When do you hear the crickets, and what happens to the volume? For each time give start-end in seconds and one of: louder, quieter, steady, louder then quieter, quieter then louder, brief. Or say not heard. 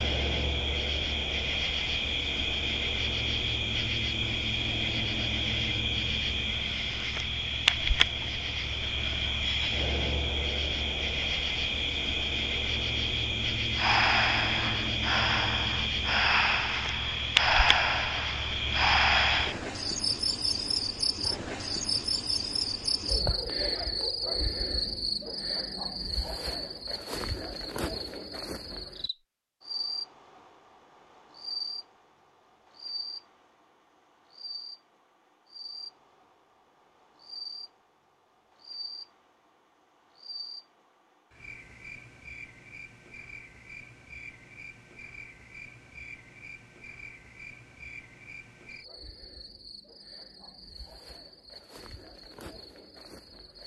0.0-53.6 quieter.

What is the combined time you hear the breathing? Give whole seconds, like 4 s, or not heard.
6 s.